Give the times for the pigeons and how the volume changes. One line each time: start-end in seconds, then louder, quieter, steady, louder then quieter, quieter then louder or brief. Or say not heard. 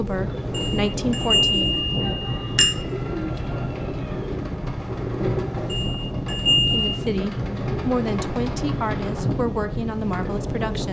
0.0-10.8 steady.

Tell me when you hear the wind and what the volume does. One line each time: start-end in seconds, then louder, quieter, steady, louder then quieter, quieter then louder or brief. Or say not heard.
0.0-10.8 steady.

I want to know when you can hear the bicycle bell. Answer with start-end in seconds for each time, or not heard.
0.6-2.8, 5.7-7.0.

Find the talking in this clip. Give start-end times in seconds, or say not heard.
0.0-1.7, 6.7-10.8.